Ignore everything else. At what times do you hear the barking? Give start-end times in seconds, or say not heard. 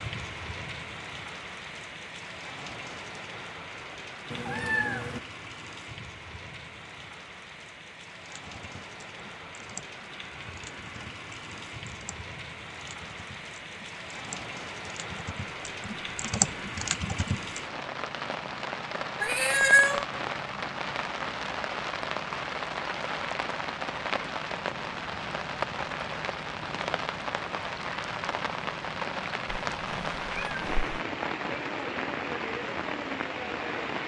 not heard.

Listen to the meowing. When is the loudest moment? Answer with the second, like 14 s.
20 s.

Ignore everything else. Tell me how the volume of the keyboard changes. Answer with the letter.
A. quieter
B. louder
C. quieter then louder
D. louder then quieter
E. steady
B.